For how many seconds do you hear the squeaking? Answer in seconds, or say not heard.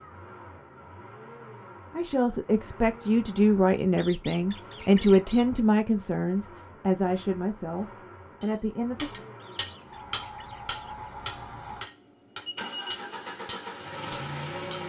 3 s.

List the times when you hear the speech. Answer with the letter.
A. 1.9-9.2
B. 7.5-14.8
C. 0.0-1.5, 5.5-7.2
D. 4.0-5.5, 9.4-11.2
A.